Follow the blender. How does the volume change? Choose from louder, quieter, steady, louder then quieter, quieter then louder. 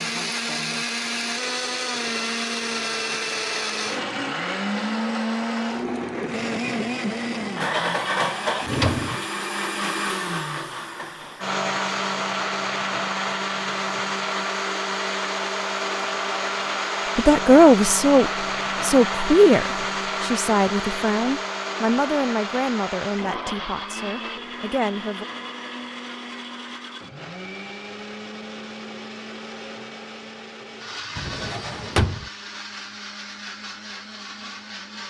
quieter.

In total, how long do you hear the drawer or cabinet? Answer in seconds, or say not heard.
2 s.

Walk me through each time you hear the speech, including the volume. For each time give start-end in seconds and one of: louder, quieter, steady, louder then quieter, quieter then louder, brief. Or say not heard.
17.1-25.2 quieter.